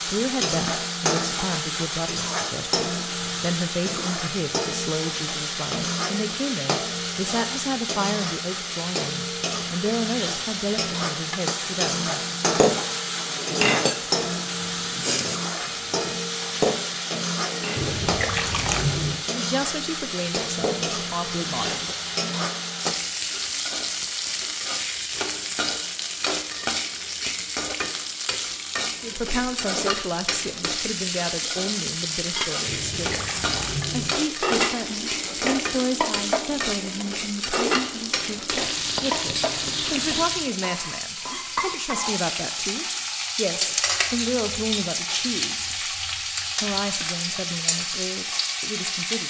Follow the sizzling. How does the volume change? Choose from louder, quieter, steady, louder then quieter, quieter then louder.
steady.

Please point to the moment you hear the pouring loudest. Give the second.
19 s.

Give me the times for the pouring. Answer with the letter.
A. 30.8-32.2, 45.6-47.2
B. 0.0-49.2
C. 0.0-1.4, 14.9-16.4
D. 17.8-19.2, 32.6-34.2
D.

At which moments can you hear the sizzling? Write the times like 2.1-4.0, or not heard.
0.0-49.2.